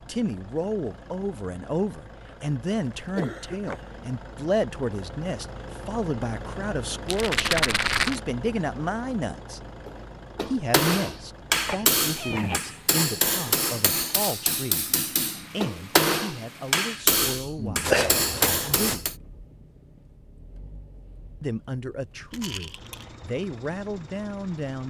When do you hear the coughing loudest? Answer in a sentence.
The loudest moment of the coughing is at 18 seconds.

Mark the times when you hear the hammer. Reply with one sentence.
The hammer can be heard from 9.8 to 19.1 s.